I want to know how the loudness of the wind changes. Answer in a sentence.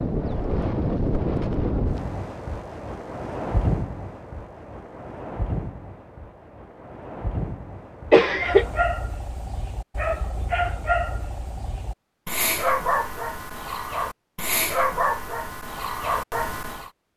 The loudness of the wind goes down.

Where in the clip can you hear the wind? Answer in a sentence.
You can hear the wind from 0.0 to 8.9 s.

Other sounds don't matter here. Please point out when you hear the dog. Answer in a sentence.
The dog can be heard from 8.4 to 16.9 s.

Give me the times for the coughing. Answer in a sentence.
You can hear the coughing from 8.1 to 8.7 s.